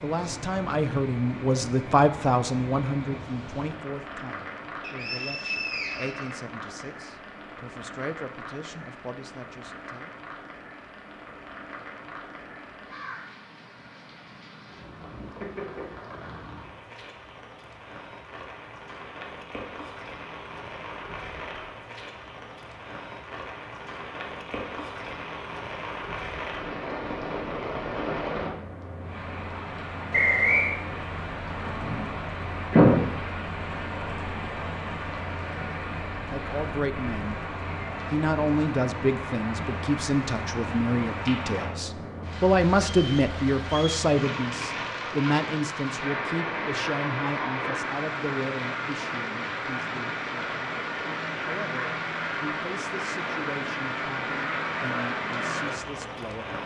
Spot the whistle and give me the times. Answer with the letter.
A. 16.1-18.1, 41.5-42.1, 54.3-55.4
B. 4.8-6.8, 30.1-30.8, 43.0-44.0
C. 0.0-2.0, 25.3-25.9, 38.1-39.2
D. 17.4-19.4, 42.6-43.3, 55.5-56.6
B.